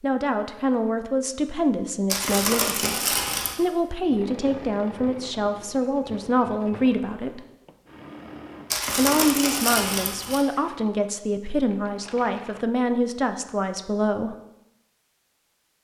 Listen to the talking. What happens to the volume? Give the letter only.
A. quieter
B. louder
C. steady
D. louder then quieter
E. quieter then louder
C.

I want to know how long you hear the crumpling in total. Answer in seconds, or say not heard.
3 s.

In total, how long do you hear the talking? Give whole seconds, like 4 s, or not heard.
13 s.